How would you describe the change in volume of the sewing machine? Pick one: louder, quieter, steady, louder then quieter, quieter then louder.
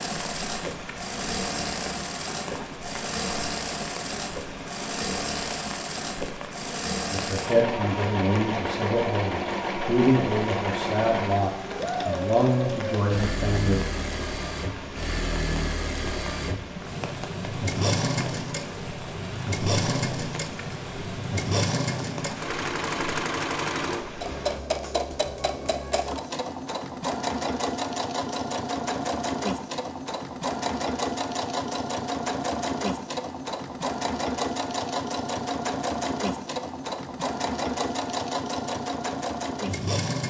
steady.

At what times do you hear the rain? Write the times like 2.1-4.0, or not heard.
0.0-24.6.